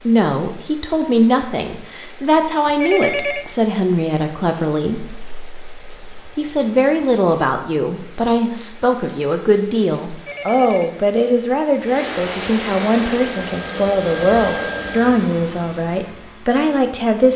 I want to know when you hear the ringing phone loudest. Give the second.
3 s.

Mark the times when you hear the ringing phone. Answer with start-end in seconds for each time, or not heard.
2.6-3.5, 10.2-11.0.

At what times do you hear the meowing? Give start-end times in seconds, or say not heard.
not heard.